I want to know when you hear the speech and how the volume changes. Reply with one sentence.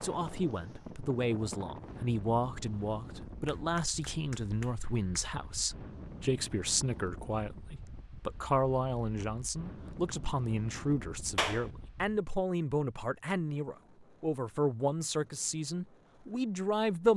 You can hear the speech from 0.0 to 17.1 s, at a steady volume.